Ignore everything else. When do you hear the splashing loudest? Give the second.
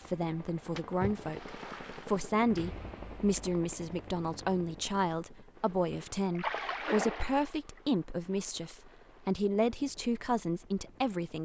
7 s.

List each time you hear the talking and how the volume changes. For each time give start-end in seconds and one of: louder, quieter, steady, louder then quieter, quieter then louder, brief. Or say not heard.
0.1-11.4 steady.